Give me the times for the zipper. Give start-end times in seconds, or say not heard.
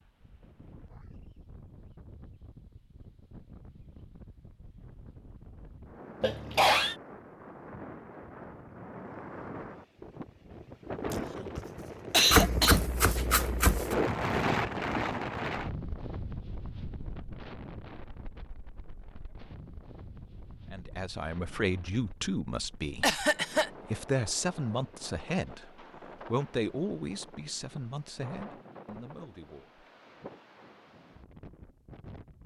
not heard.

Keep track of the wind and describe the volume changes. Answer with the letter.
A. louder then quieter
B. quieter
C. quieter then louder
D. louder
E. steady
A.